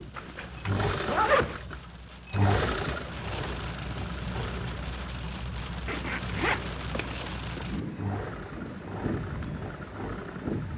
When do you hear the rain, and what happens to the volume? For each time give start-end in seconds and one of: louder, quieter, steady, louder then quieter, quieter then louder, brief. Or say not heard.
0.0-10.7 louder.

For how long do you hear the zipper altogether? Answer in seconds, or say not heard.
3 s.